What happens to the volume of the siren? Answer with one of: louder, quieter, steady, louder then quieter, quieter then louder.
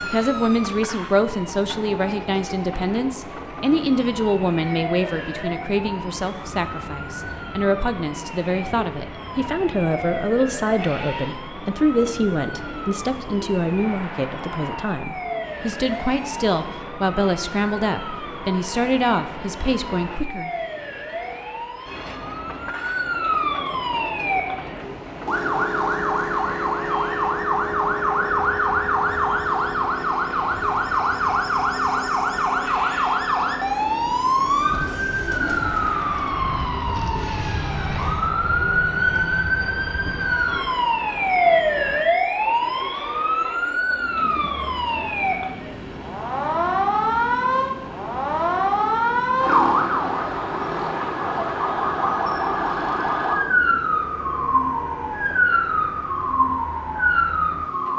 louder.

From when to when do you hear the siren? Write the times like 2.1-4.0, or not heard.
0.0-57.9.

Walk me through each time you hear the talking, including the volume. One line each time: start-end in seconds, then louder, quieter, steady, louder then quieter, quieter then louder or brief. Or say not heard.
0.0-20.5 steady.